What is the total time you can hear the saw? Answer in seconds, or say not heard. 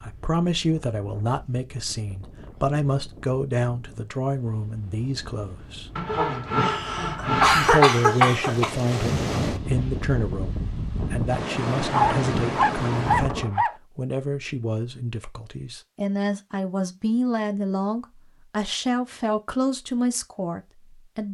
4 s.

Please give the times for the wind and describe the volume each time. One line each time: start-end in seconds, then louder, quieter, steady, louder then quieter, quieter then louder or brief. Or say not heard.
0.0-13.6 louder.